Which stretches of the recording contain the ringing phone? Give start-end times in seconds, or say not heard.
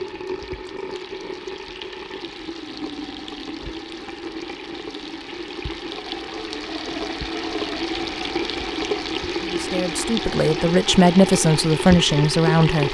not heard.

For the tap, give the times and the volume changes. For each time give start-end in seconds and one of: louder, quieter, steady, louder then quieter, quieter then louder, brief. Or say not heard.
0.0-12.8 louder.